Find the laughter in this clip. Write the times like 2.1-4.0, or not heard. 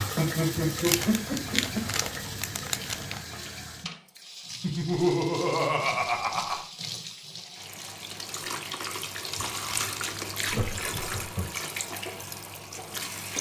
0.1-1.9, 4.6-6.7, 10.4-11.4.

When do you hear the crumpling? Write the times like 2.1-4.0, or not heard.
0.7-3.2, 9.3-10.6.